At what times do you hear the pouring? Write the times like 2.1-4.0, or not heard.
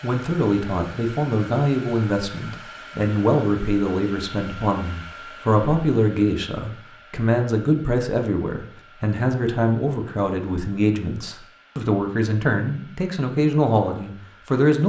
not heard.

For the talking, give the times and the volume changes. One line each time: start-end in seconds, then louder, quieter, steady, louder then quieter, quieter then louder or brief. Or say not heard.
0.0-14.8 steady.